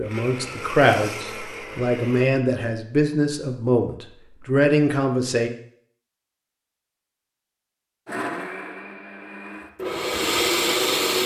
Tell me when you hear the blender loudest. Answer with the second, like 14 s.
11 s.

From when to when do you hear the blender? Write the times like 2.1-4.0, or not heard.
0.0-2.3, 8.1-11.2.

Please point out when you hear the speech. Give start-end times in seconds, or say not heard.
0.0-5.5.